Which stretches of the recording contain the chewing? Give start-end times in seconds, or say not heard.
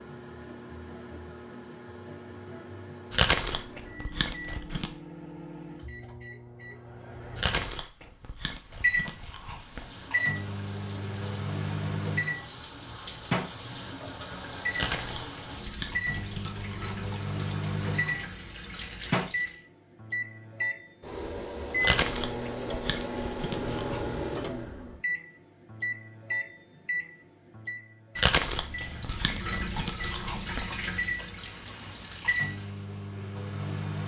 3.1-4.9, 7.3-9.8, 14.7-17.0, 21.8-24.1, 28.1-30.9.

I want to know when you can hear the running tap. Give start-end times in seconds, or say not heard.
9.4-19.6, 28.4-32.8.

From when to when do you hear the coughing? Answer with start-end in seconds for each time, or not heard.
not heard.